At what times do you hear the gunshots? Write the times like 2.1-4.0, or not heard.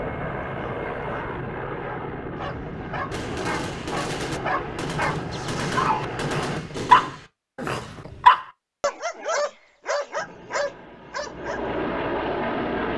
3.1-7.3.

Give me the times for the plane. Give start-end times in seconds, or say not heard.
0.0-6.6, 10.1-12.9.